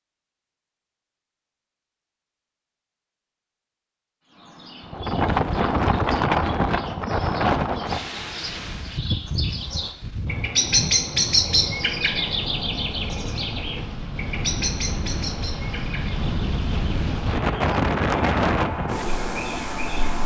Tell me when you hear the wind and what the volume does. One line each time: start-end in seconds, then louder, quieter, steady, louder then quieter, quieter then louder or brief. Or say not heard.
4.9-20.2 quieter then louder.